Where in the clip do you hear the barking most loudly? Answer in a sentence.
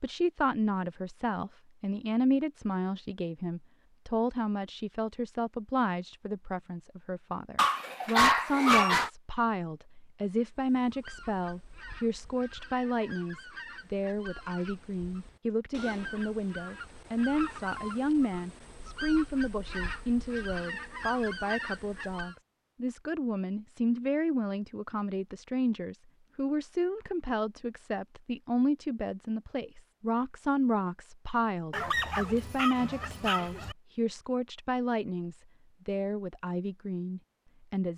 The loudest moment of the barking is at 8 seconds.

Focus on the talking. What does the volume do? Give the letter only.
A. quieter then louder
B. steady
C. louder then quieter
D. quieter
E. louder
B.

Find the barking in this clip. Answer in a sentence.
The barking can be heard from 7.5 to 9.1 s and from 31.7 to 33.8 s.